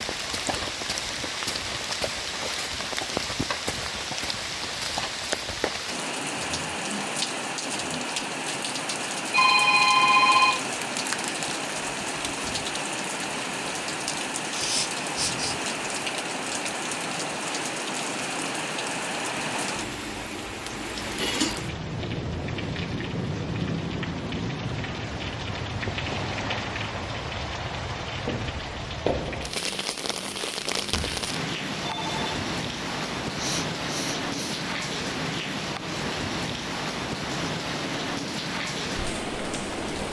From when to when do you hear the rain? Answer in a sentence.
The rain can be heard from 0.0 to 40.0 s.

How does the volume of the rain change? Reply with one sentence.
The loudness of the rain stays about the same.